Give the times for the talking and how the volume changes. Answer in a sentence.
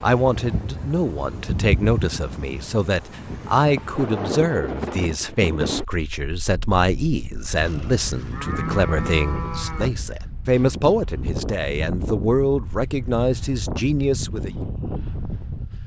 The talking can be heard from 0.0 to 14.6 s, at a steady volume.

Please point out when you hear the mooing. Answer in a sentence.
You can hear the mooing from 7.6 to 9.9 s.